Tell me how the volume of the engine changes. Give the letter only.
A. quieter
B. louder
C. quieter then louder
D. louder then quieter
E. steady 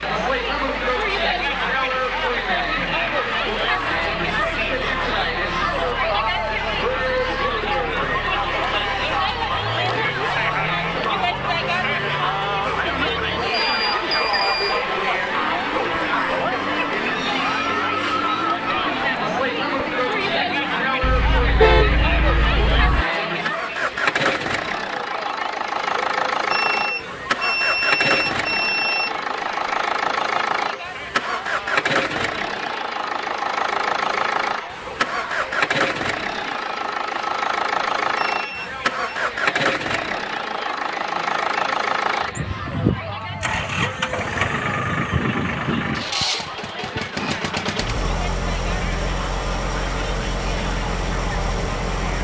B.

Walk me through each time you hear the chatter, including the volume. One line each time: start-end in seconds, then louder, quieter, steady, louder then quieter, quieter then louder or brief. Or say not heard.
0.0-52.2 quieter.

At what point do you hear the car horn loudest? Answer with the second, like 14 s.
22 s.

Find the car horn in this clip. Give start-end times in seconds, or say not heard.
21.0-23.1.